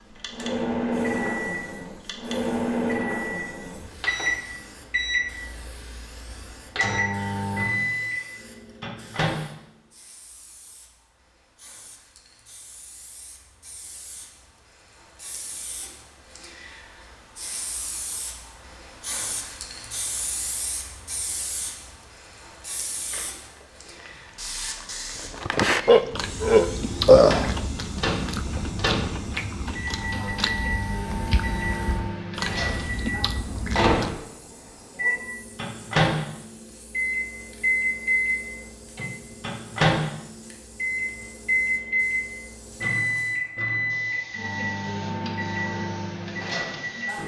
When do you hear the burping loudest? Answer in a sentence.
The volume of the burping peaks at 27 seconds.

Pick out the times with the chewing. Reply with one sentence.
The chewing can be heard from 23.0 to 34.1 s.